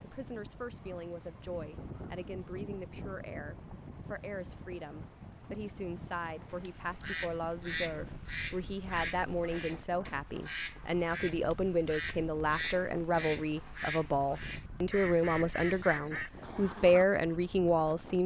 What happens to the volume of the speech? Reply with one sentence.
The volume of the speech goes up.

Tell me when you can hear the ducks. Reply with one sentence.
You can hear the ducks from 6.5 to 17.1 s.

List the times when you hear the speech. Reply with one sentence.
You can hear the speech from 0.0 to 18.2 s.